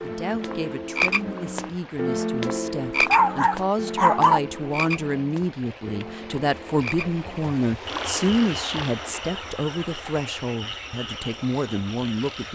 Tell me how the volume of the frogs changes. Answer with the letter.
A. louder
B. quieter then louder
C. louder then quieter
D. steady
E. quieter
E.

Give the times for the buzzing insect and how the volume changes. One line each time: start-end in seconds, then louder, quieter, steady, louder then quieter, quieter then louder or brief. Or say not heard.
not heard.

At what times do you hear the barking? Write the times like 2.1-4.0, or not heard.
3.1-4.4.